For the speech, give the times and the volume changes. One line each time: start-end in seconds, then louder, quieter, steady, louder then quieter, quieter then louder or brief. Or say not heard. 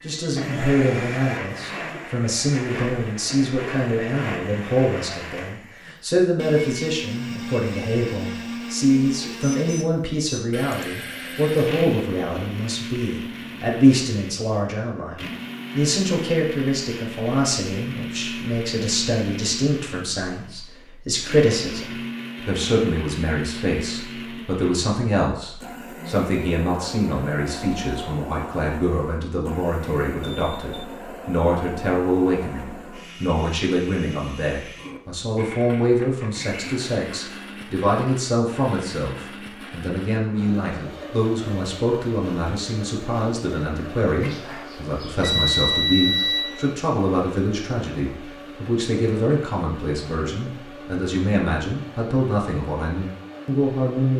0.0-54.1 steady.